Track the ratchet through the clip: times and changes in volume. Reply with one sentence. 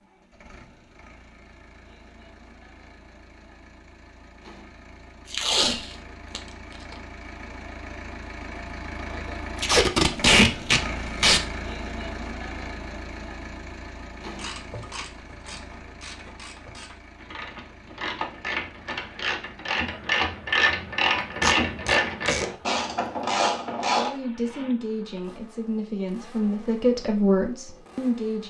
The ratchet can be heard from 14.3 to 24.1 s, getting louder.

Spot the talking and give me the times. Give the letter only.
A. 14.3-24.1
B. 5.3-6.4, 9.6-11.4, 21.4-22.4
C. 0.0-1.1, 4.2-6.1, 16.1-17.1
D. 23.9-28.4
D.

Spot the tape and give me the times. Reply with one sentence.
The tape can be heard from 5.3 to 6.4 s, from 9.6 to 11.4 s and from 21.4 to 22.4 s.